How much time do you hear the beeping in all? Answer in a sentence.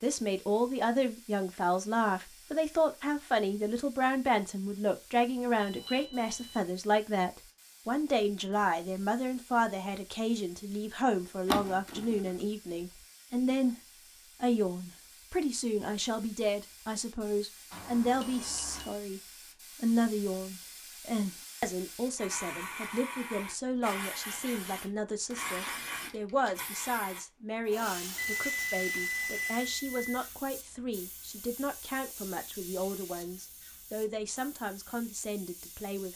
You can hear the beeping for 4 seconds altogether.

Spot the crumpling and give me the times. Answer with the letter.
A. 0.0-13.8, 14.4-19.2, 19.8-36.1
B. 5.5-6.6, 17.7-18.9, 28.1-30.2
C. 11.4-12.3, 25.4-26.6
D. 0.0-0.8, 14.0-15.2
C.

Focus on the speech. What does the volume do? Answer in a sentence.
The volume of the speech goes down.